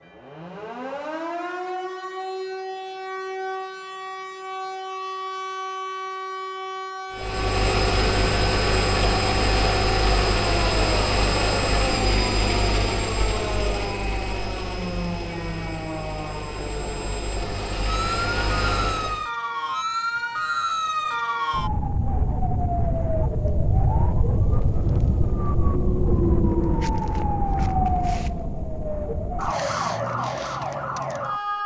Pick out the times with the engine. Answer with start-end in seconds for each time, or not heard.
7.1-19.2.